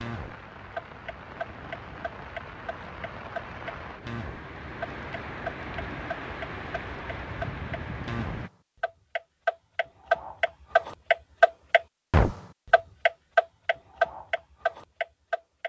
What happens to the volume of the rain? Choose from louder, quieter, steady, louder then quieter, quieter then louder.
louder.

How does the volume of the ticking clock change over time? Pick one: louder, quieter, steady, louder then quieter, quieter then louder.
louder.